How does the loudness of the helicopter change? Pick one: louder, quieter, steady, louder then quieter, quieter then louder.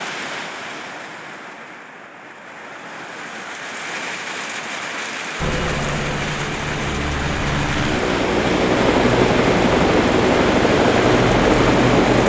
louder.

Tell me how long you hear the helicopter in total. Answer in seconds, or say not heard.
7 s.